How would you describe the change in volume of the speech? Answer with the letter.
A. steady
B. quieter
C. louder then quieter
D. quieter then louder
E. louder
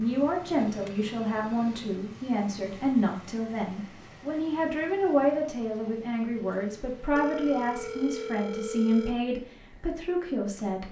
A.